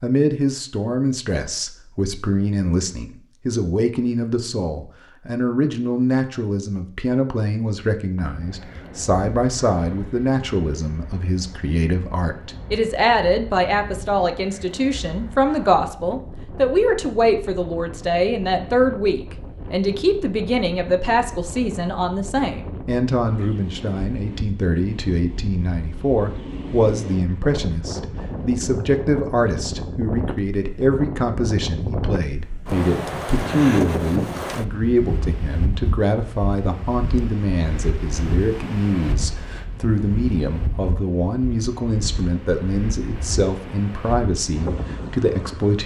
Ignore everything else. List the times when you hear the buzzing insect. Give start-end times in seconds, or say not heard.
not heard.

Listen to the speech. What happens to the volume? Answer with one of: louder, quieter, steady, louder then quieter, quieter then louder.
steady.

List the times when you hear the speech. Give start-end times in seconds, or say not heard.
0.0-45.8.